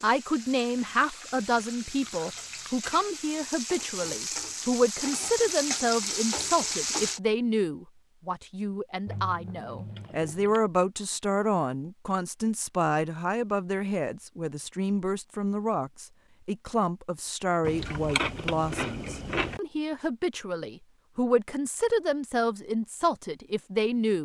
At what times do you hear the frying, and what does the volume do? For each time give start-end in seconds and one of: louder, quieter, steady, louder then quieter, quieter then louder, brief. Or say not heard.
0.0-7.2 louder.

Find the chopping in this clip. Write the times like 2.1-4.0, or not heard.
not heard.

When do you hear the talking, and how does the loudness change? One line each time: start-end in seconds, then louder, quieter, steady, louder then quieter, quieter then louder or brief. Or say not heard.
0.0-24.2 steady.